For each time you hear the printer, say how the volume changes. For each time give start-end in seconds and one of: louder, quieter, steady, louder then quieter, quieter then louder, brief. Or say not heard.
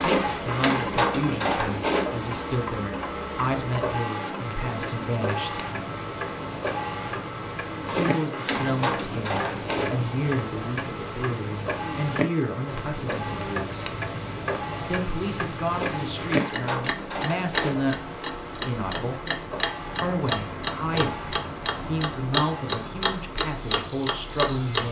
0.0-24.8 quieter.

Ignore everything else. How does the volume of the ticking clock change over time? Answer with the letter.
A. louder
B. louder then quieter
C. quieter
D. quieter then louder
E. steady
A.